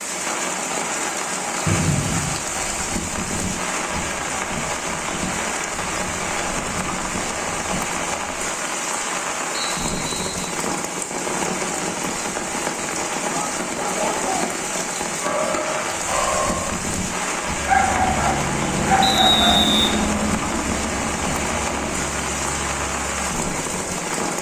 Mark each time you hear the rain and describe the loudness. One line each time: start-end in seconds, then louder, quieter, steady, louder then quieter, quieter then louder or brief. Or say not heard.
0.0-24.3 steady.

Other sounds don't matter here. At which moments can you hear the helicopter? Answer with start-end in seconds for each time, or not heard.
17.6-24.1.